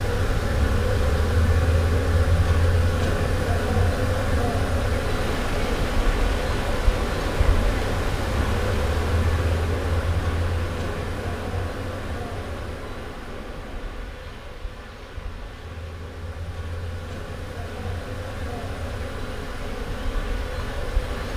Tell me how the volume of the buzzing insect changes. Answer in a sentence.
The loudness of the buzzing insect goes down, then up.